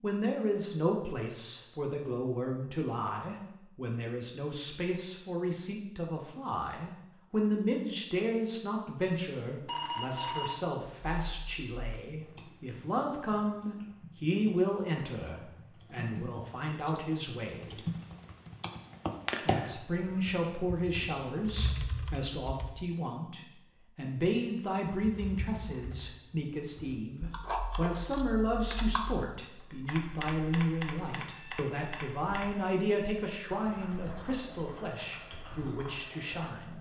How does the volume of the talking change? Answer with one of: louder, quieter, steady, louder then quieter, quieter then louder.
steady.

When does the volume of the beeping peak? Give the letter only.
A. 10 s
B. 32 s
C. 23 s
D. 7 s
A.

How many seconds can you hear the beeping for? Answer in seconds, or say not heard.
2 s.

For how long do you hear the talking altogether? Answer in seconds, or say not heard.
35 s.